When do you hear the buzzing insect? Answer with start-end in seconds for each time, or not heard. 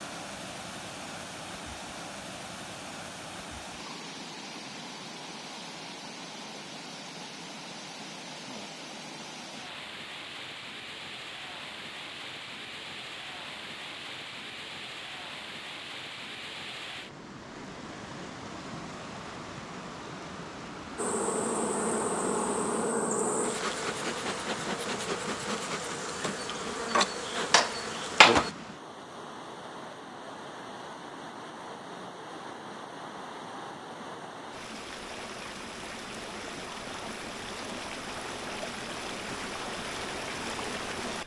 20.9-28.5.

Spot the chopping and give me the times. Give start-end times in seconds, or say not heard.
not heard.